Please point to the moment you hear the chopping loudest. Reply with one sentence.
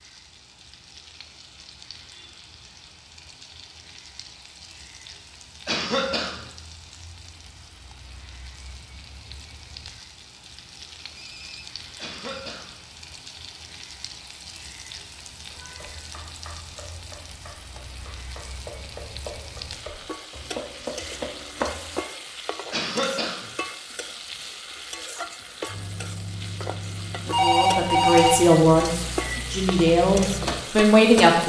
The volume of the chopping peaks at 22 seconds.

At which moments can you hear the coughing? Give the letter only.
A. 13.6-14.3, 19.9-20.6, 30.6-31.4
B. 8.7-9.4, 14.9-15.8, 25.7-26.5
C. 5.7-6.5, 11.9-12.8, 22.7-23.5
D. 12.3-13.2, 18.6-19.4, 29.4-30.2
C.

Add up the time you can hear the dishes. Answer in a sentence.
The dishes can't be heard in this clip.